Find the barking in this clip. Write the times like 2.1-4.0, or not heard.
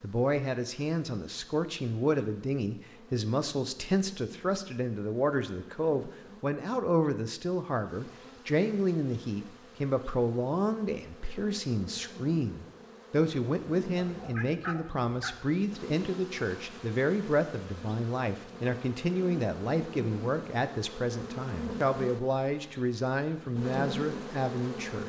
13.9-15.4.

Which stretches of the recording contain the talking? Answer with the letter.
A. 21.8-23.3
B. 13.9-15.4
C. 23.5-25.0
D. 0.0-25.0
D.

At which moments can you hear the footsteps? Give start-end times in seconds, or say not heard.
not heard.